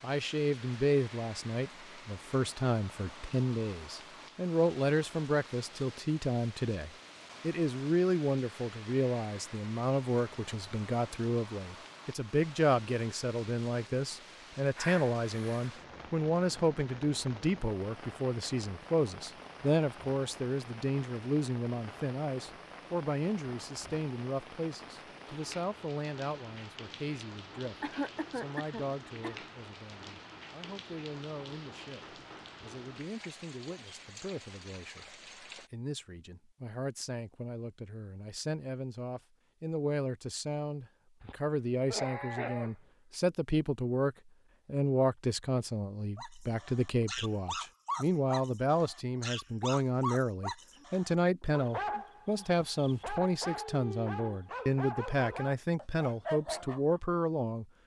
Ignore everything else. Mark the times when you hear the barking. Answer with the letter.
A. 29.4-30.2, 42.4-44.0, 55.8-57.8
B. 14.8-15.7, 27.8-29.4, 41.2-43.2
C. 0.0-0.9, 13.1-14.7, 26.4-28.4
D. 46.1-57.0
D.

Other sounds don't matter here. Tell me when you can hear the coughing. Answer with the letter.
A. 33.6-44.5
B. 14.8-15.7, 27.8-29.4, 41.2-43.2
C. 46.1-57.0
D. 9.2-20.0
B.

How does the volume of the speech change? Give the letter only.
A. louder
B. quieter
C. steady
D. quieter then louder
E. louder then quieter
D.